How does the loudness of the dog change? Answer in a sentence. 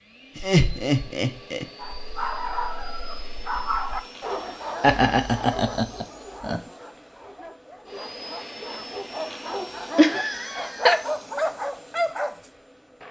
The volume of the dog goes down, then up.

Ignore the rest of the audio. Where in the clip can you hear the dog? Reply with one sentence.
The dog can be heard from 1.8 to 12.5 s.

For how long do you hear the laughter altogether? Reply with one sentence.
The laughter can be heard for 4 seconds in total.